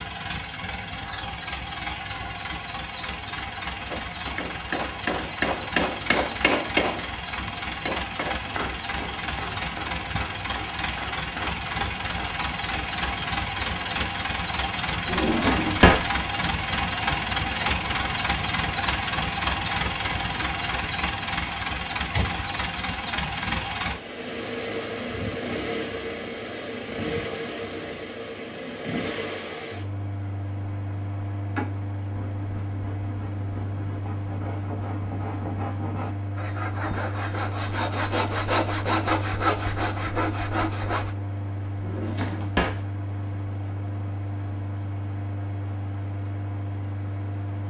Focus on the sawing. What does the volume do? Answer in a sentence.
The volume of the sawing goes up.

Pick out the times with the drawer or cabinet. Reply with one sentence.
The drawer or cabinet can be heard from 15.1 to 16.1 s and from 41.8 to 42.8 s.